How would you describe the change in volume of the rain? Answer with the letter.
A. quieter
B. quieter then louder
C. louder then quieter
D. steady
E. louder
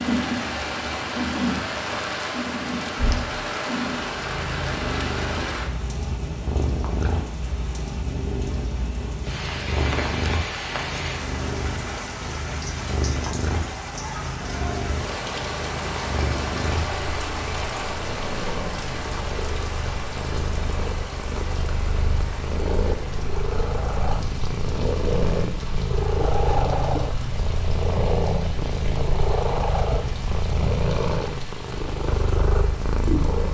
A.